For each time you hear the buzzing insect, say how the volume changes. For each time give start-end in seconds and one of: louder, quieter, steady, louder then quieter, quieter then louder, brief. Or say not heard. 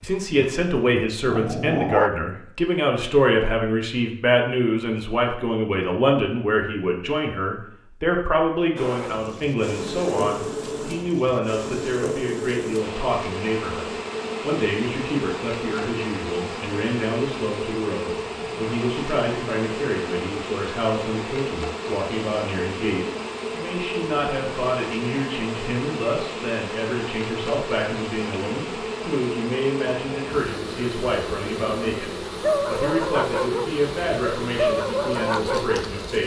8.8-36.2 steady.